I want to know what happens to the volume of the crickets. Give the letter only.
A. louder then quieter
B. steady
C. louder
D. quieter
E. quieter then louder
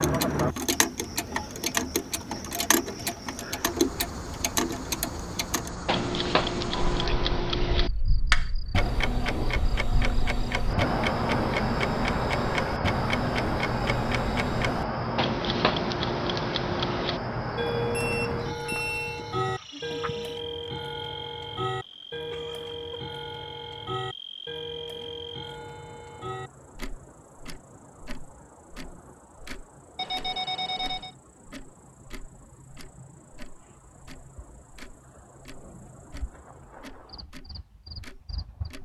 A.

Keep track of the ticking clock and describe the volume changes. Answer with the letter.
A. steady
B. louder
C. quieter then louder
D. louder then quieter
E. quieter
E.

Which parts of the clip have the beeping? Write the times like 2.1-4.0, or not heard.
6.7-7.6, 17.9-19.2, 29.9-31.1.